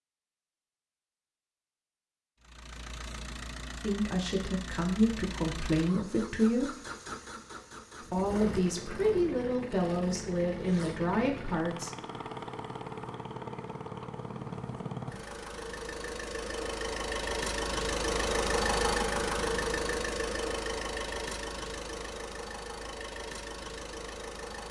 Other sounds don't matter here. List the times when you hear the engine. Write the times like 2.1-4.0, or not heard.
2.4-24.6.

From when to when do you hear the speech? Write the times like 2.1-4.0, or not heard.
3.8-6.8, 8.1-11.9.